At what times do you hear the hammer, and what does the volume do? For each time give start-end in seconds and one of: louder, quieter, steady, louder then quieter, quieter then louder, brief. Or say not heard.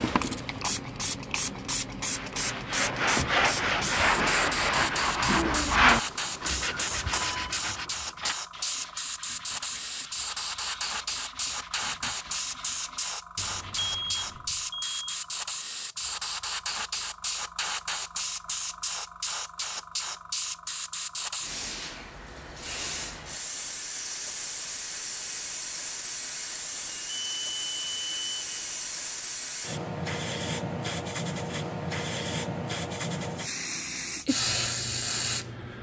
not heard.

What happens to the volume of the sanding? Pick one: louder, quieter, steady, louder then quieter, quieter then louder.
quieter.